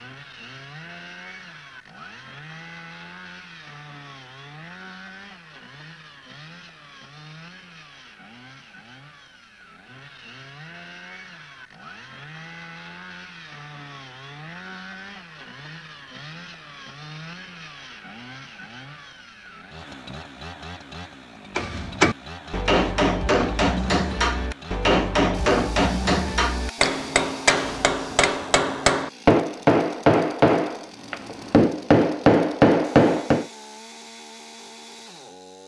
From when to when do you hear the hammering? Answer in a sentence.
The hammering can be heard from 21.6 to 33.5 s.